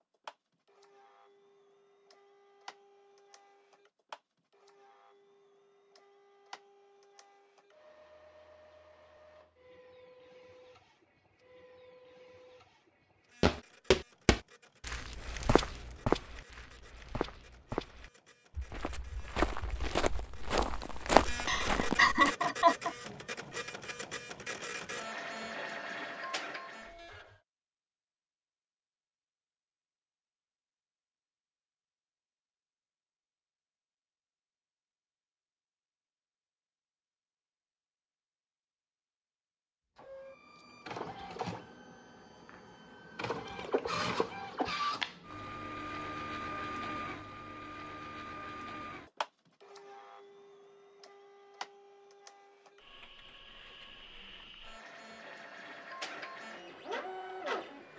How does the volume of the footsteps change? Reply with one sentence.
The volume of the footsteps goes down, then up.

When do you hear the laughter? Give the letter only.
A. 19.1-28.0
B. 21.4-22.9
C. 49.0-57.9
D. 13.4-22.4
B.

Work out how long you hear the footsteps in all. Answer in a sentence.
The footsteps can be heard for 9 seconds in total.